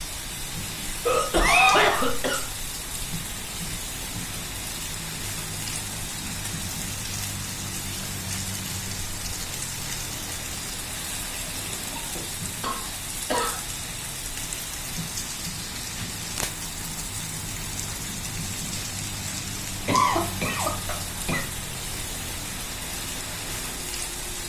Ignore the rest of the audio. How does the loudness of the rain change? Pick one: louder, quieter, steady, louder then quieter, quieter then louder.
steady.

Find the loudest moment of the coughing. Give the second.
2 s.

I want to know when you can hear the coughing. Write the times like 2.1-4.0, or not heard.
1.1-2.5, 11.9-13.6, 19.9-21.4.